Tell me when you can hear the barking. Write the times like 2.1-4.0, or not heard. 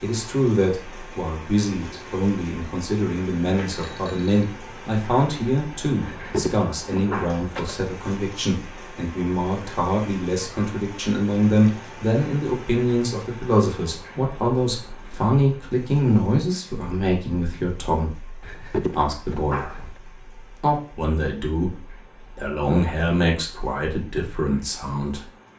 6.0-7.8, 18.4-19.9.